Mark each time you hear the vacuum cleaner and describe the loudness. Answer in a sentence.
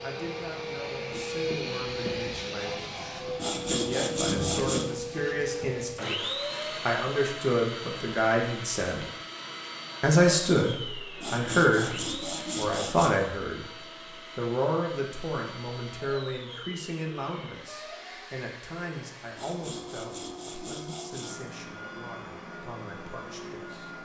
The vacuum cleaner can be heard from 0.0 to 23.9 s, getting quieter.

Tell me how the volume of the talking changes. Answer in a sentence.
The loudness of the talking goes up, then down.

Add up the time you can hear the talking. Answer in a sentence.
The talking can be heard for 22 seconds in total.